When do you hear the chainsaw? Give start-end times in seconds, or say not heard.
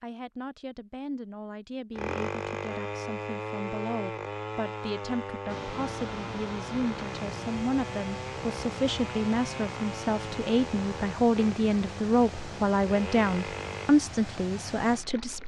1.9-13.9.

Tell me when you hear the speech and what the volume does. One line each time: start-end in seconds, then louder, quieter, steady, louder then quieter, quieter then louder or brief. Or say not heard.
0.0-15.4 louder.